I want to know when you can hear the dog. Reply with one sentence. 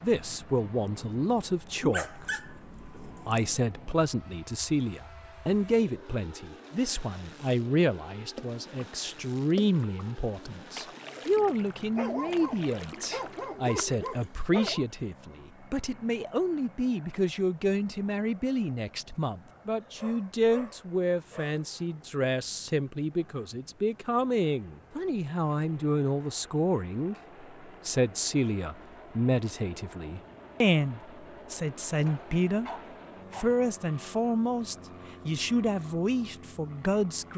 The dog can be heard from 1.8 to 3.5 s, from 11.9 to 14.8 s, from 19.8 to 21.6 s and from 32.0 to 33.6 s.